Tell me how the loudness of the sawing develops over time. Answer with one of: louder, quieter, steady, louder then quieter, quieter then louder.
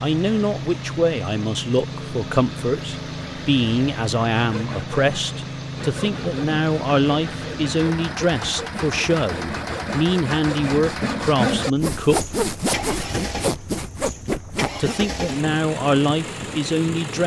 louder.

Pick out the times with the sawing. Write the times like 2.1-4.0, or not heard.
3.8-15.0.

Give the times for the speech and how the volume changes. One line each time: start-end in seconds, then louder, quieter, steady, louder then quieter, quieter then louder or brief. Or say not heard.
0.0-12.2 steady
14.8-17.2 brief.